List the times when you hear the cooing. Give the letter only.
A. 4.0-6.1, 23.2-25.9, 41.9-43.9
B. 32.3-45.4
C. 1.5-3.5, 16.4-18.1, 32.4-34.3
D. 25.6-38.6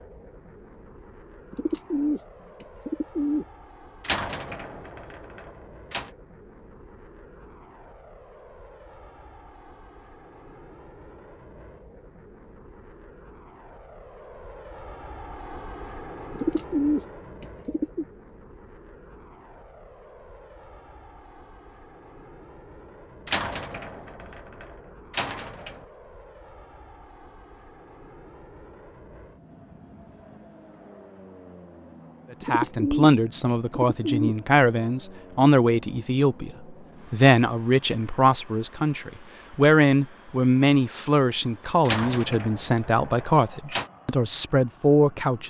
C.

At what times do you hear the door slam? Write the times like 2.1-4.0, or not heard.
4.0-6.1, 23.2-25.9, 41.9-43.9.